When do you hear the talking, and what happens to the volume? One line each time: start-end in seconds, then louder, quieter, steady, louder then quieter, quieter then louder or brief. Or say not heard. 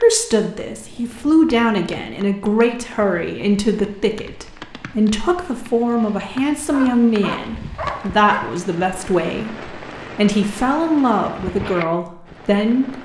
0.0-12.9 steady.